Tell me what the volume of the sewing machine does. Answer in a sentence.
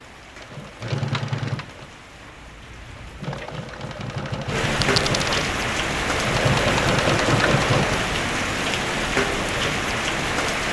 The volume of the sewing machine goes down, then up.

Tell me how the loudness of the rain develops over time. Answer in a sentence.
The volume of the rain goes up.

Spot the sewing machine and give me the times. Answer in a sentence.
You can hear the sewing machine from 0.2 to 8.2 s.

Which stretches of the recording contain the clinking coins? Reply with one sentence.
The clinking coins can be heard from 4.8 to 5.5 s.